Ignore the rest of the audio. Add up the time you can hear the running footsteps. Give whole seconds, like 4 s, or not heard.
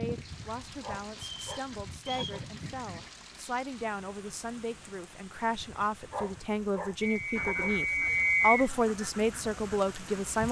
not heard.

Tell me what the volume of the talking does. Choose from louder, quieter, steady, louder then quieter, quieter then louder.
louder.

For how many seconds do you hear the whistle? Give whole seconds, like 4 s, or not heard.
3 s.